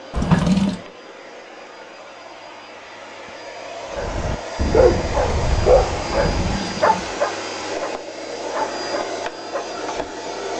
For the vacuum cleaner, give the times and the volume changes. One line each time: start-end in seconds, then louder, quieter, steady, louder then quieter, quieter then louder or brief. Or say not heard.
0.0-10.5 louder.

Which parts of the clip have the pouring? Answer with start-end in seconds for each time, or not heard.
0.1-0.8, 6.3-7.2.